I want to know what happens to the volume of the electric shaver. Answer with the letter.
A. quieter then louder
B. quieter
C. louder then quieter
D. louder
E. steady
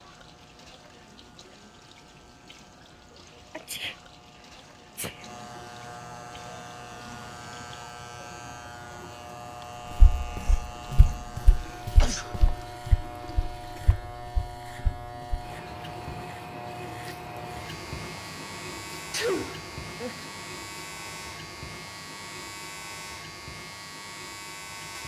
D.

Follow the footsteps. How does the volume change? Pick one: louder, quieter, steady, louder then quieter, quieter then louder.
quieter.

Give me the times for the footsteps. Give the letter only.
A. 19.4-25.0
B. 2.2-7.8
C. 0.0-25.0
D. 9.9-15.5
D.